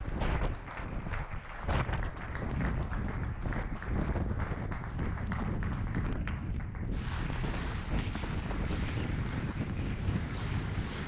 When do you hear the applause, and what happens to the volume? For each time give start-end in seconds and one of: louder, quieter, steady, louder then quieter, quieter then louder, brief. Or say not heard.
0.0-11.0 steady.